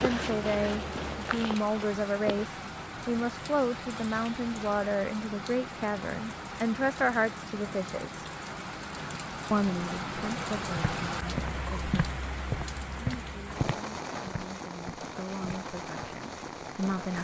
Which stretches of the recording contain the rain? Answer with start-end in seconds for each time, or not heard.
0.0-17.2.